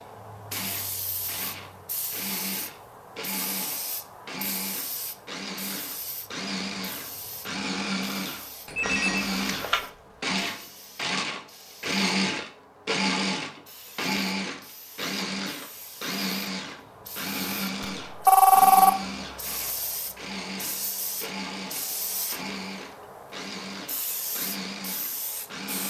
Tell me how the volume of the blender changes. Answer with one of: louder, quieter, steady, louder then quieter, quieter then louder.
louder then quieter.